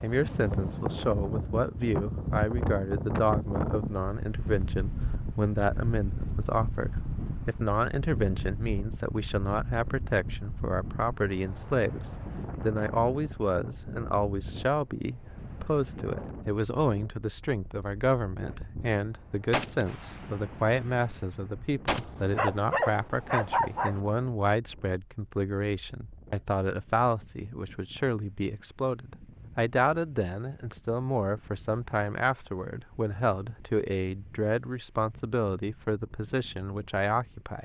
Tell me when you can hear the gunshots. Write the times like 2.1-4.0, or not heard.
18.6-22.1.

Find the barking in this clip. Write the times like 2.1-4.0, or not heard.
21.9-24.0.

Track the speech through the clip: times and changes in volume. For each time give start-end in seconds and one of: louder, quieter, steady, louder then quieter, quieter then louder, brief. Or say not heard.
0.0-37.6 steady.